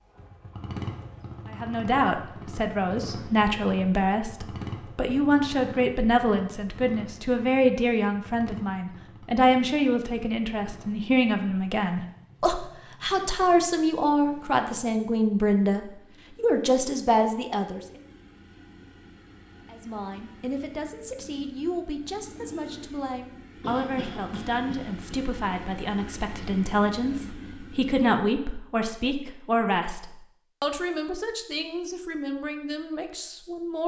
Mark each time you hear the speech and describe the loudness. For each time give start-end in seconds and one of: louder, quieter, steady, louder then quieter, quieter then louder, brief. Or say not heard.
1.4-17.8 steady
19.6-33.8 louder then quieter.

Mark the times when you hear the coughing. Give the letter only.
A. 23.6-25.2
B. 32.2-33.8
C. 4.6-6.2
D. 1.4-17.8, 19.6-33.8
A.